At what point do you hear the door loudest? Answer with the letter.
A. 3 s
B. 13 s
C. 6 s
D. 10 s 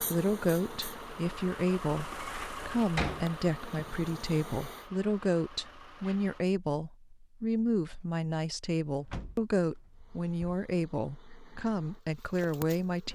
A.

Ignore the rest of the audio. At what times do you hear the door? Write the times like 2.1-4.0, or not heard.
2.2-3.2, 8.9-10.6.